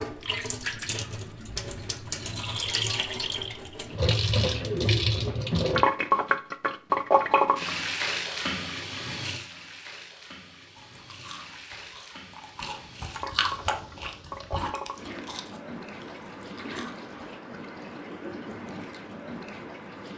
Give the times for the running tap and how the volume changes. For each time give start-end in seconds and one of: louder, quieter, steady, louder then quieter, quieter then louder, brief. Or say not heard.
0.0-20.1 louder then quieter.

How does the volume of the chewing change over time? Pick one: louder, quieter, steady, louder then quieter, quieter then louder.
louder then quieter.